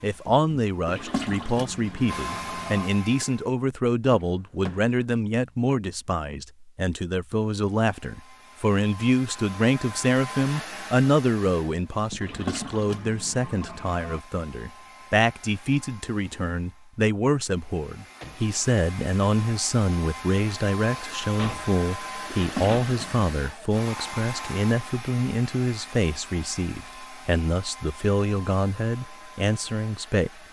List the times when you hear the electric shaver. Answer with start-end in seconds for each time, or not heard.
not heard.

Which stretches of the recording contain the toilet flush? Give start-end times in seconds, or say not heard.
0.8-2.9, 12.2-14.2, 22.3-23.3.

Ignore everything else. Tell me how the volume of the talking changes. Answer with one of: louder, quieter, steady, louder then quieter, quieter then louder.
steady.